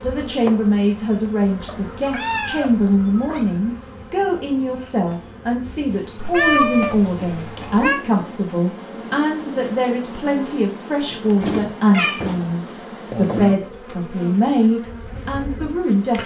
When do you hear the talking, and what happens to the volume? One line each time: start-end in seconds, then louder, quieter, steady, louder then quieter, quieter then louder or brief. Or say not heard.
0.0-16.2 steady.